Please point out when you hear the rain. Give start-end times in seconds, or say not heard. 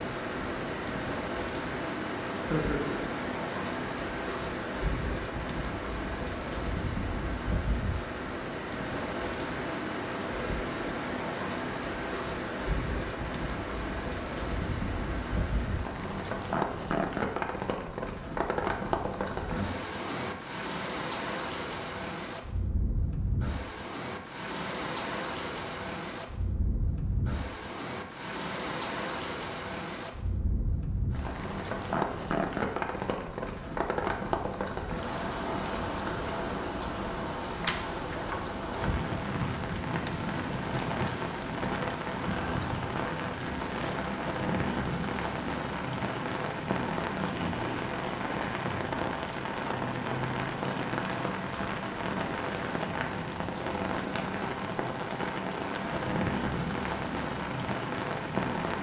0.0-58.7.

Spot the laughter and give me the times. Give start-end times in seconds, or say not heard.
2.5-3.0.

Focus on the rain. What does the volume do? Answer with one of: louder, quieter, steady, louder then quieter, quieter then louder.
steady.